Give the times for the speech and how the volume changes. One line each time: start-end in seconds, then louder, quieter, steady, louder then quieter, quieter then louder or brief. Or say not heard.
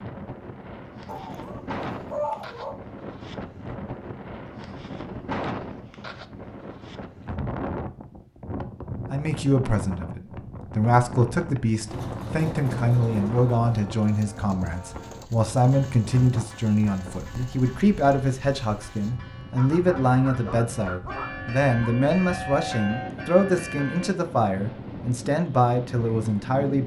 9.1-26.8 steady.